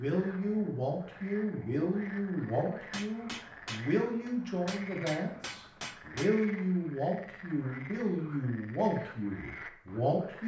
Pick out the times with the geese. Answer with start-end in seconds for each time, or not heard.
not heard.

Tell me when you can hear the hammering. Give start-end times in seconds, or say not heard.
2.9-6.3.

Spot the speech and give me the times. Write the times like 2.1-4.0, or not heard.
0.0-10.4.